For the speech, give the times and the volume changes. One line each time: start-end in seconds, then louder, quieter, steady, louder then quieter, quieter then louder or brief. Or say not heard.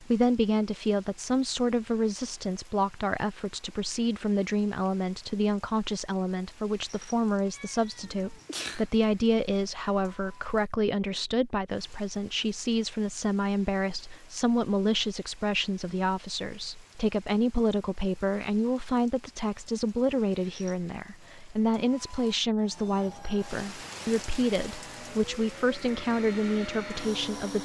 0.0-27.6 steady.